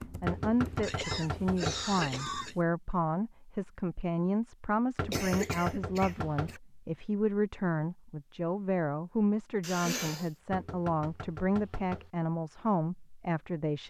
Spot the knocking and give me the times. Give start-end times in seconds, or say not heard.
0.2-1.9, 5.0-6.6, 10.5-12.1.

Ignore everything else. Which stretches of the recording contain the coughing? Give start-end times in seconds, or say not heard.
0.8-2.5, 5.1-6.6, 9.6-10.3.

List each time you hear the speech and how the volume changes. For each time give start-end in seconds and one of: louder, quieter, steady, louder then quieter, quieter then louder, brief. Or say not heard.
0.1-13.8 steady.